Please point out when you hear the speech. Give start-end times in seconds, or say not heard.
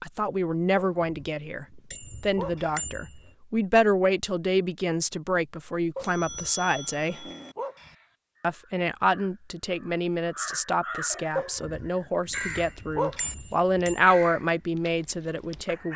0.0-7.2, 8.4-15.9.